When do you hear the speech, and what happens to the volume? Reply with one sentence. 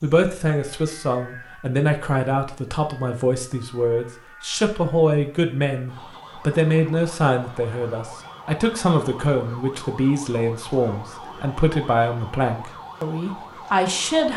The speech can be heard from 0.0 to 14.3 s, at a steady volume.